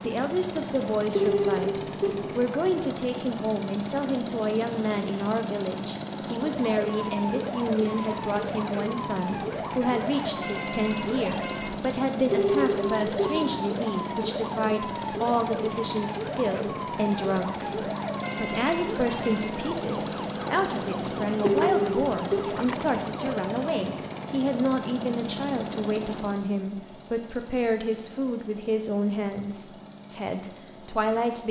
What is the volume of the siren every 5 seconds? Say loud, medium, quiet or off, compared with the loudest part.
off, loud, loud, loud, loud, off, off.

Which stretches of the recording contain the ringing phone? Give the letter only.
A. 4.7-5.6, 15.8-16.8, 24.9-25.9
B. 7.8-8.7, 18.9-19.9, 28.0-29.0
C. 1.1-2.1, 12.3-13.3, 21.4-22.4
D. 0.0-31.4
C.